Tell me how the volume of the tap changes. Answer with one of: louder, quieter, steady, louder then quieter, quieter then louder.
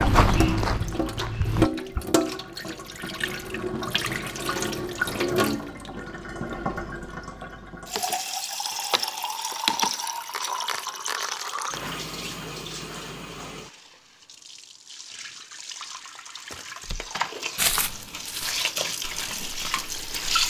quieter then louder.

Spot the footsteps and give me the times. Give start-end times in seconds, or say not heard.
0.0-1.7, 16.5-20.4.